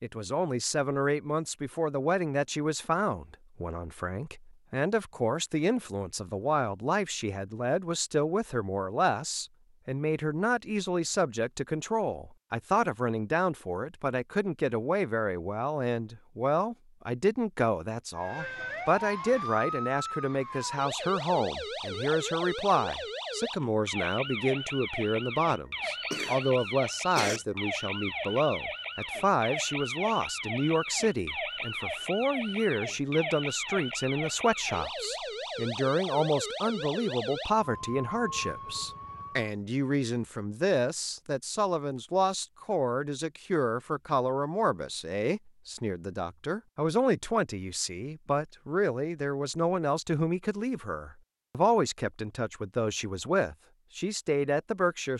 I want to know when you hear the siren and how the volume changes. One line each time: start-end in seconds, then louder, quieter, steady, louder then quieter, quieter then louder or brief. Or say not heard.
18.1-39.5 steady.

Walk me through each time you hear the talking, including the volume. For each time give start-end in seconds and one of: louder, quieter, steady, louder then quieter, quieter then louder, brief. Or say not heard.
0.0-55.1 steady.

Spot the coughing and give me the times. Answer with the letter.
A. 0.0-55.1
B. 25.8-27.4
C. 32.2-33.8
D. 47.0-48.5
B.